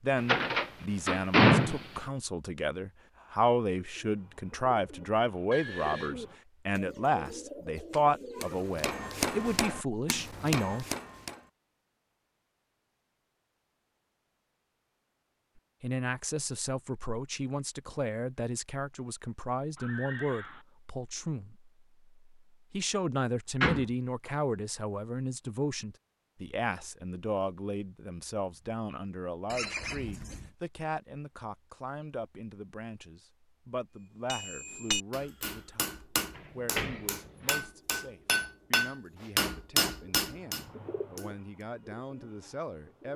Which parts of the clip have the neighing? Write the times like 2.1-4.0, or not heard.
5.5-6.2, 19.8-20.6, 29.5-30.5.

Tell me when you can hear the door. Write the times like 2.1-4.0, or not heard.
0.1-2.0, 23.6-24.3, 36.4-37.5.